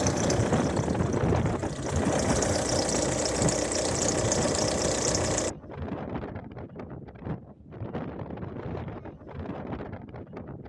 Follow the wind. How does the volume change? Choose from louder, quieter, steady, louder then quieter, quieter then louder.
quieter.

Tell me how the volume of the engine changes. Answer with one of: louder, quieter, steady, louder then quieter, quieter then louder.
louder.